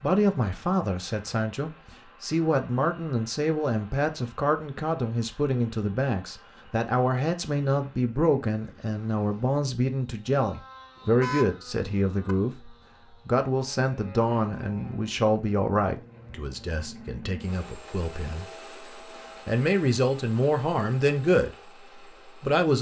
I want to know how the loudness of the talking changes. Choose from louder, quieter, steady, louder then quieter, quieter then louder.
steady.